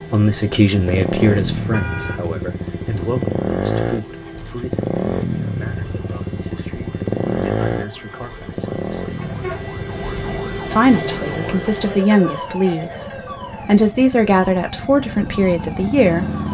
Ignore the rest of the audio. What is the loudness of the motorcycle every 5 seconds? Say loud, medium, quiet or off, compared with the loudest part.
loud, loud, medium, loud.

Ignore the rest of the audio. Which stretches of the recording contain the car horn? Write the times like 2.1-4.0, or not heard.
1.6-2.2, 9.2-10.4.